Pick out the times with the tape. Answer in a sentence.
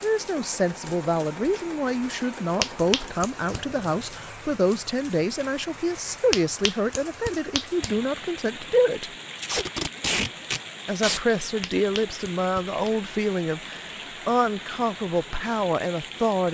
The tape can be heard from 9.3 to 11.2 s.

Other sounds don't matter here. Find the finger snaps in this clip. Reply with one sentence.
You can hear the finger snaps from 2.6 to 3.6 s, from 6.3 to 8.0 s and from 11.6 to 12.9 s.